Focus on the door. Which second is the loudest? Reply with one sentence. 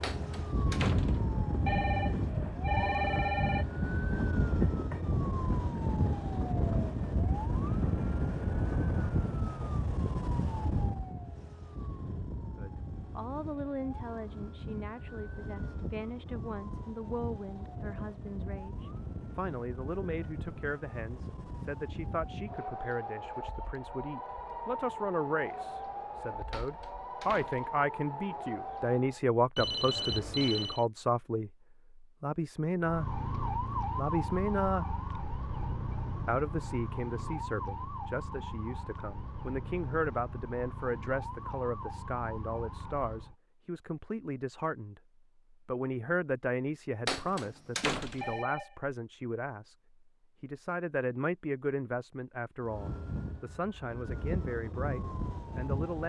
The volume of the door peaks at 48 seconds.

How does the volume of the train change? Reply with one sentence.
The volume of the train stays about the same.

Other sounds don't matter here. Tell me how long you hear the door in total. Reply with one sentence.
You can hear the door for 4 seconds altogether.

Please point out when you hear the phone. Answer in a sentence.
The phone can be heard from 1.6 to 3.6 s, from 29.6 to 30.9 s and from 48.2 to 48.8 s.